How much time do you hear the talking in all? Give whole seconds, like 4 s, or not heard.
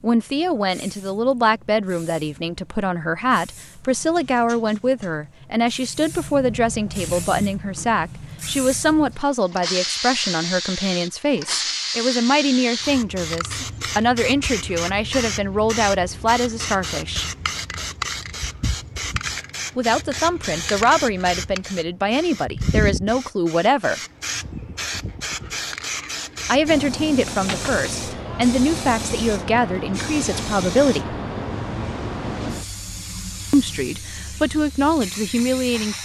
29 s.